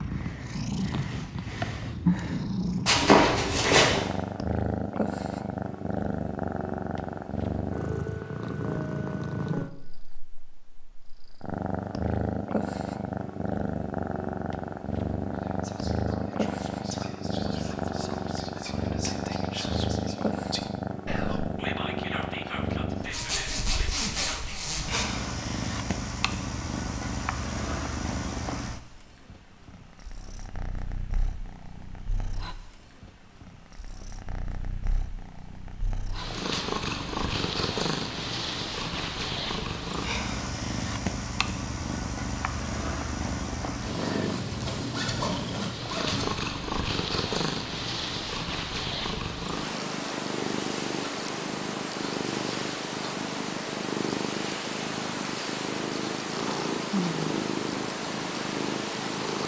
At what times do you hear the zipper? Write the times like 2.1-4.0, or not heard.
2.9-4.0, 23.0-25.1, 44.5-46.4.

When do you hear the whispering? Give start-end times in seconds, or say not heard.
15.3-24.6.